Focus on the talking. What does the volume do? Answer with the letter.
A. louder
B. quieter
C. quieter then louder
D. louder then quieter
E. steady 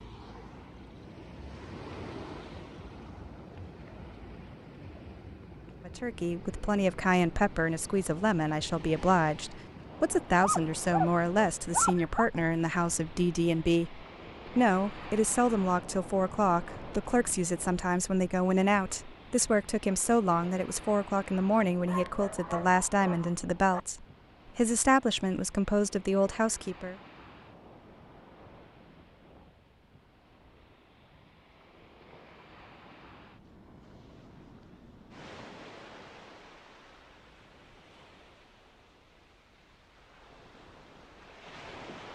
E.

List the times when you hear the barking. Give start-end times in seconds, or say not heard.
10.4-12.2, 21.9-23.8.